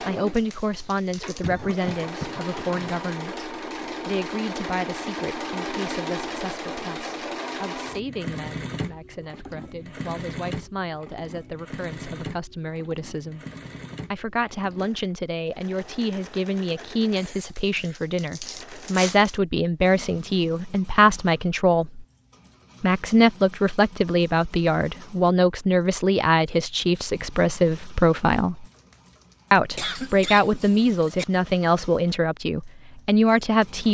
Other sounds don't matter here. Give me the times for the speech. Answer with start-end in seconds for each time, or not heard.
0.1-13.4, 14.1-22.1, 22.8-28.6, 29.5-33.8.